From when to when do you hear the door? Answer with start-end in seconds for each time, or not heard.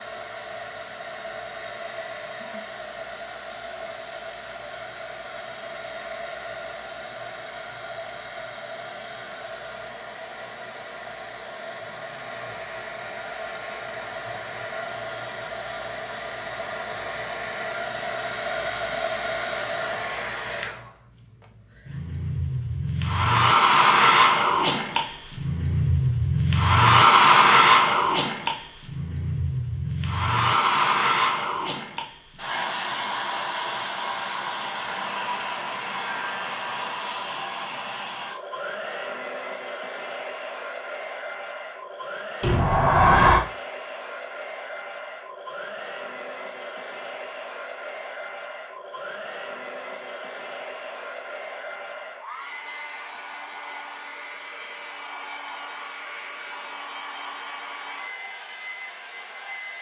42.4-43.5.